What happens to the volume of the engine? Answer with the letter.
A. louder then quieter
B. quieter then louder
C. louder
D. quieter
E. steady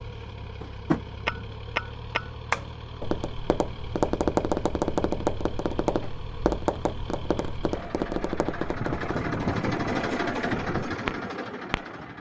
C.